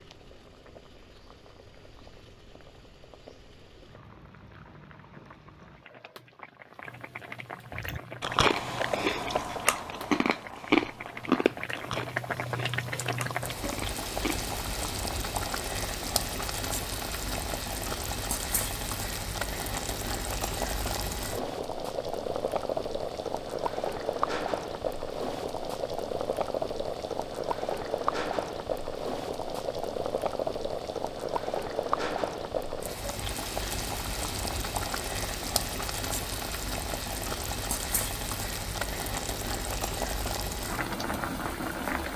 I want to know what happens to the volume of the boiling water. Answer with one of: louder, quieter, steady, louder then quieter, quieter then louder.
louder.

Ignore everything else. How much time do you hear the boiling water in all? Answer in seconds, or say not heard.
42 s.